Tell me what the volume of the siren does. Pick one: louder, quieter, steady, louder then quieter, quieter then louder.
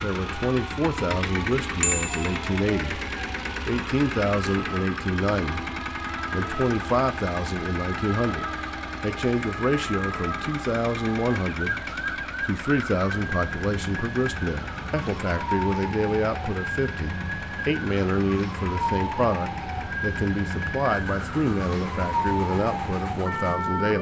louder.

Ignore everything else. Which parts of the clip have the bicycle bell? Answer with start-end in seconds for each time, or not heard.
1.8-2.4.